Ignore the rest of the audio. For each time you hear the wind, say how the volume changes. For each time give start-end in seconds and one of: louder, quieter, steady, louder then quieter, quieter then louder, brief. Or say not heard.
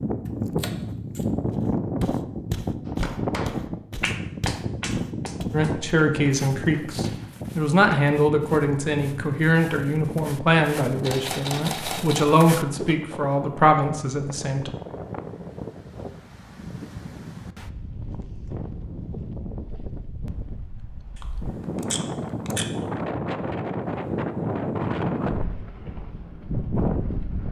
0.0-27.4 quieter then louder.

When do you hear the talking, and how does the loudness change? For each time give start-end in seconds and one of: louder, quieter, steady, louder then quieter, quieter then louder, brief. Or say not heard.
5.5-14.7 steady.